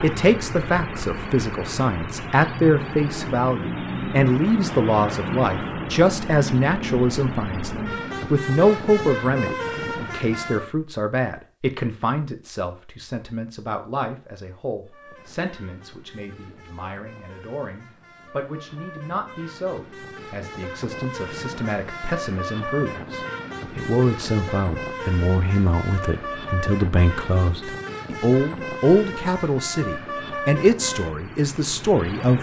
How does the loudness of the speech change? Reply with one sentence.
The loudness of the speech goes down, then up.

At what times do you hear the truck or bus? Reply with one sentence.
You can hear the truck or bus from 0.0 to 10.7 s and from 14.8 to 32.3 s.